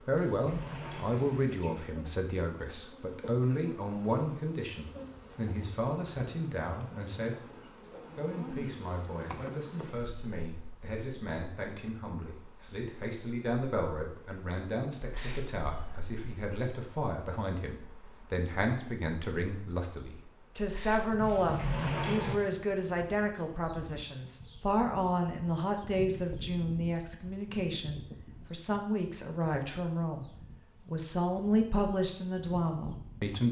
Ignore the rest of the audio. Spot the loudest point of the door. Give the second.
22 s.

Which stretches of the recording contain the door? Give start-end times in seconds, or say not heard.
0.1-2.0, 21.2-22.4.